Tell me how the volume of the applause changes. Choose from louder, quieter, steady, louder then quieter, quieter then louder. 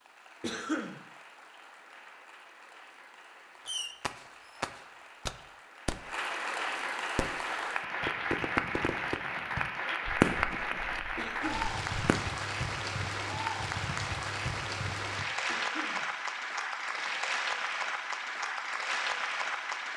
louder.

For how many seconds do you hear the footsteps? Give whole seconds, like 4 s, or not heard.
not heard.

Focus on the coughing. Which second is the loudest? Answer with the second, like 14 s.
1 s.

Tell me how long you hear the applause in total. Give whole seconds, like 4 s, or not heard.
20 s.